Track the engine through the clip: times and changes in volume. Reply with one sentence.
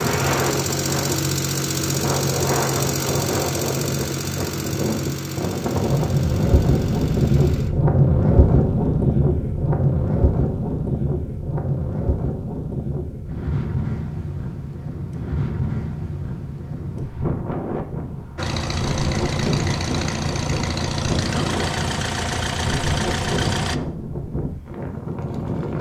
You can hear the engine from 0.0 to 7.8 s, getting quieter; and from 18.4 to 23.8 s, at a steady volume.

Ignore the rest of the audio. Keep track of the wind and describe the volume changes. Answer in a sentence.
The volume of the wind goes up, then down.